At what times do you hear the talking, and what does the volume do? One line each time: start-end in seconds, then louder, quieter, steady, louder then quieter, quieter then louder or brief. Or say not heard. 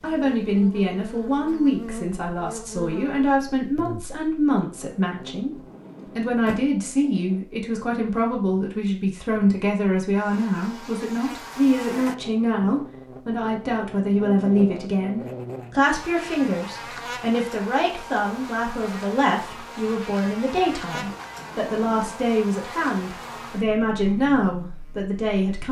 0.0-25.6 steady.